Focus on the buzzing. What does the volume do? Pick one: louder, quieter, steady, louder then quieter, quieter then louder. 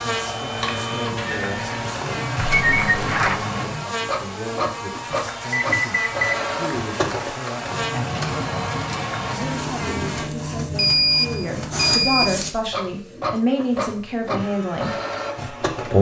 steady.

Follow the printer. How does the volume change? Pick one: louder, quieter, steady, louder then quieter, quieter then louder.
steady.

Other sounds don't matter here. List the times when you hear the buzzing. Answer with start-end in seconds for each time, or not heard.
0.0-10.3.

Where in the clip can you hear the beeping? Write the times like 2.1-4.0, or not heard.
2.4-3.5, 5.5-6.2, 10.8-12.4.